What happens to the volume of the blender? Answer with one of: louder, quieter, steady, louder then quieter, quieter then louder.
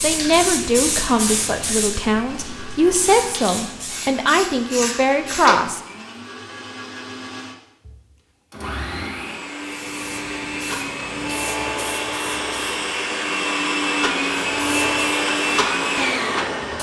louder.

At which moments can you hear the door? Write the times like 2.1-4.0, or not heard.
5.3-6.0.